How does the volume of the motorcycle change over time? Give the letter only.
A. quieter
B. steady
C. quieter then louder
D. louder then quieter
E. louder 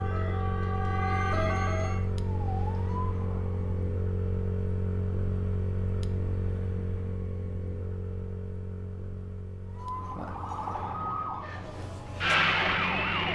A.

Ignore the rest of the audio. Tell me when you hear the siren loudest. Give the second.
13 s.